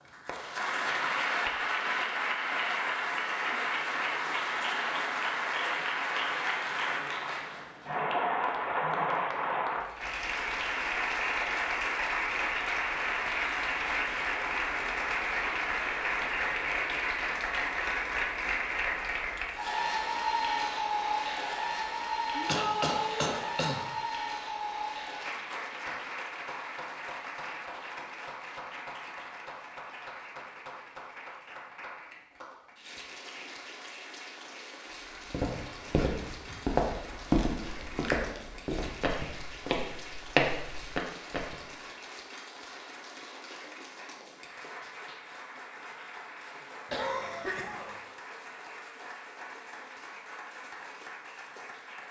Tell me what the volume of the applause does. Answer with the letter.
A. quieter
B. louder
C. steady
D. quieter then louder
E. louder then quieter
A.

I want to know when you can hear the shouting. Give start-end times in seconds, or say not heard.
22.4-23.4.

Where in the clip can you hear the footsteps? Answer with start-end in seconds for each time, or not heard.
35.3-41.6.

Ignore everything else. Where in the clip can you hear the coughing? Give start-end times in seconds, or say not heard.
22.4-23.8, 46.9-48.0.